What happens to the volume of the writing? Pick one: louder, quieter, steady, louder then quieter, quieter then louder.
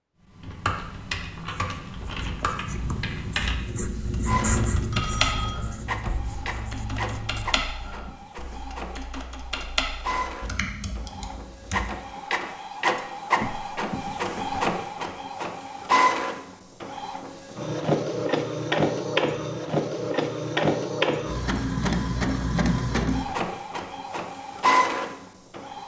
louder then quieter.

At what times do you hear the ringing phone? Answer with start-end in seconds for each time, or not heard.
4.9-5.6.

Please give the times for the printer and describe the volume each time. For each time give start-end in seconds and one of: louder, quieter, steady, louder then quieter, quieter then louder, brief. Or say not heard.
4.2-25.8 louder.